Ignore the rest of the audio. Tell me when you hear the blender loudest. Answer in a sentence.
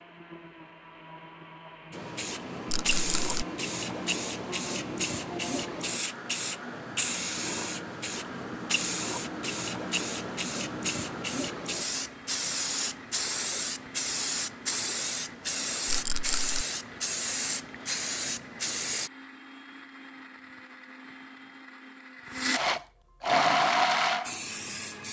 The loudest moment of the blender is at 24 seconds.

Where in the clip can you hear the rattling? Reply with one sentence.
The rattling can be heard from 2.6 to 3.5 s and from 15.8 to 16.6 s.